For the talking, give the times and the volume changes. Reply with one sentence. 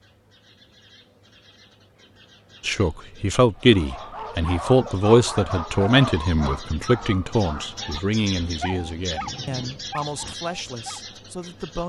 You can hear the talking from 2.6 to 11.8 s, getting quieter.